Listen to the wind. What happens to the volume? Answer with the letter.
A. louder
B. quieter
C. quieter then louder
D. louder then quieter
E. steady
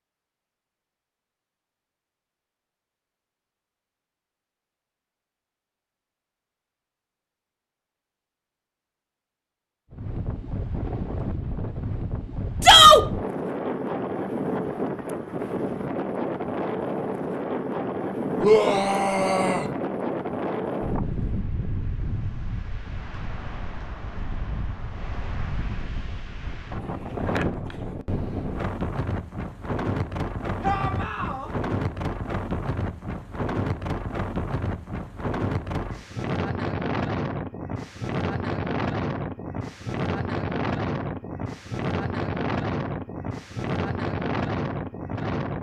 E.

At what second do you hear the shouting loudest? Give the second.
13 s.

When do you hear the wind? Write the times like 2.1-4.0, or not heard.
9.9-45.5.